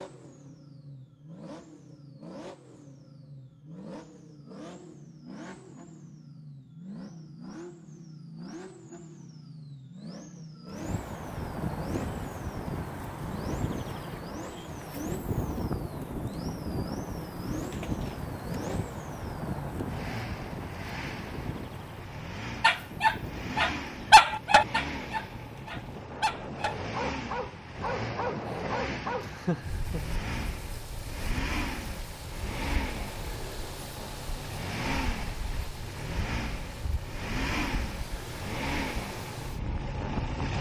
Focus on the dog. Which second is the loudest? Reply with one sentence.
The volume of the dog peaks at 24 seconds.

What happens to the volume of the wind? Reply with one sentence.
The volume of the wind goes down.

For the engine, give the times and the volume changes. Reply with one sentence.
You can hear the engine from 0.0 to 40.5 s, getting louder.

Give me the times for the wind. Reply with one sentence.
You can hear the wind from 10.7 to 40.5 s.